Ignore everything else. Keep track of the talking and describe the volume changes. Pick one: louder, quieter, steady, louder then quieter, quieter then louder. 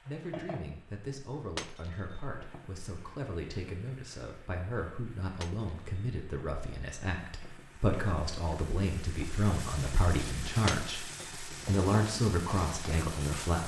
louder.